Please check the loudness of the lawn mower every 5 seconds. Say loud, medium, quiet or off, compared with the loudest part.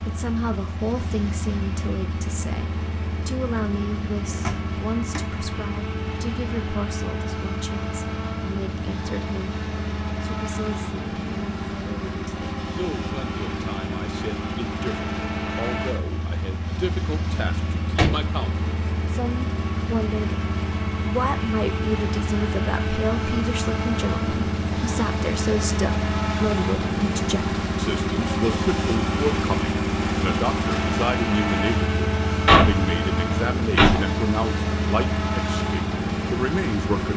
medium, medium, medium, medium, loud, loud, loud, loud.